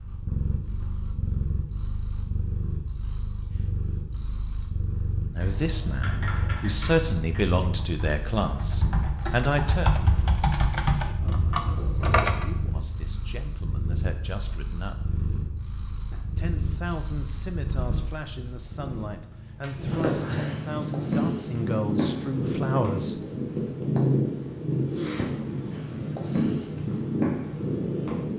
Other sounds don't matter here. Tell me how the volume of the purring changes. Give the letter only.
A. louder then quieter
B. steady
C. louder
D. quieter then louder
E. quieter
C.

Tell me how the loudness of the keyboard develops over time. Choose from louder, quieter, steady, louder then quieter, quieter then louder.
quieter then louder.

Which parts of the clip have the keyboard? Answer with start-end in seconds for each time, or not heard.
5.4-12.4.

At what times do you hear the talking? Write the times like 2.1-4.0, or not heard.
5.3-9.9, 12.3-15.2, 16.4-23.2.